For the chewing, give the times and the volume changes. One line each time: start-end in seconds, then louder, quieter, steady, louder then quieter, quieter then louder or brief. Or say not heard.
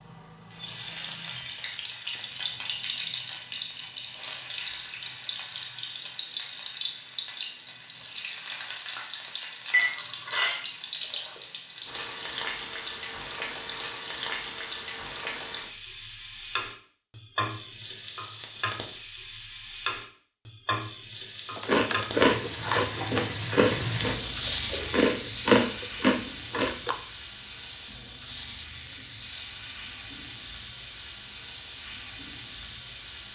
21.6-26.9 quieter then louder.